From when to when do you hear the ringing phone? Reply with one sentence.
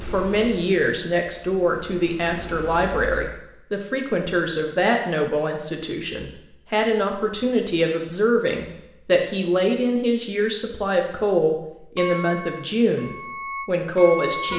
The ringing phone can't be heard in this clip.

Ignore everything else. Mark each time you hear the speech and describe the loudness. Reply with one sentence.
The speech can be heard from 0.0 to 14.5 s, at a steady volume.